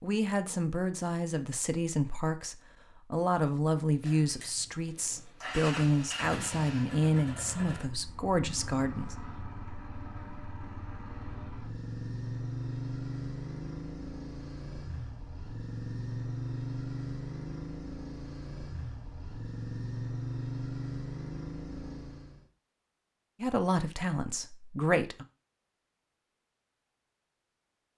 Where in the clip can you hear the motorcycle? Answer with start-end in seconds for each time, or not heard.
3.9-22.4.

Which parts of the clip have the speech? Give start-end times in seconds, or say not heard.
0.0-9.2, 23.4-25.2.